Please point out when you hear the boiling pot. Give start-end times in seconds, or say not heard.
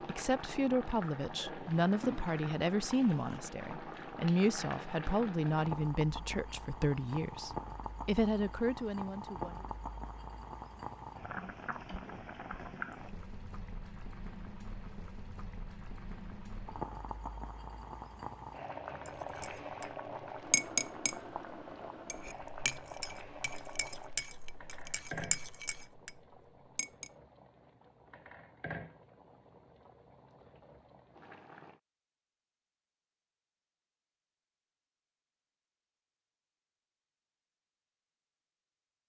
0.0-31.8.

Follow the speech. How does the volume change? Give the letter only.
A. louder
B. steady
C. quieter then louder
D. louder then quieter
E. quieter
B.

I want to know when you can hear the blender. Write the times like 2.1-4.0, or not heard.
not heard.